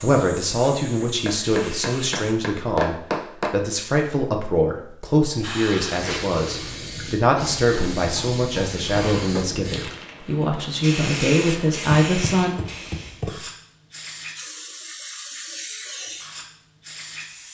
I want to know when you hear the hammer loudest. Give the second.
3 s.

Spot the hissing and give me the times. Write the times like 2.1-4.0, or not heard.
0.0-2.3, 5.4-17.4.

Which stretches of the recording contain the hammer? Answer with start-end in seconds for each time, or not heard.
1.2-3.5, 7.6-9.4, 12.0-13.4.